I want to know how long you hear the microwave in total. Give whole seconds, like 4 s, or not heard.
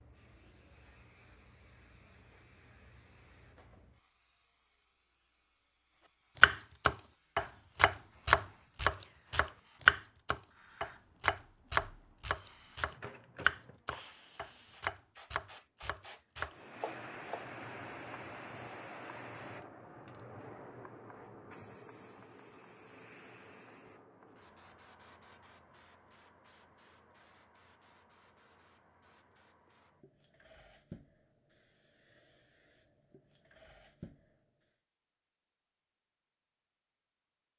not heard.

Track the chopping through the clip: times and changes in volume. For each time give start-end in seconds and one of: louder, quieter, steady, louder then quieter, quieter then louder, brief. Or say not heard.
6.4-17.6 quieter.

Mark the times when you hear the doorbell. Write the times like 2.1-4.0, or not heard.
not heard.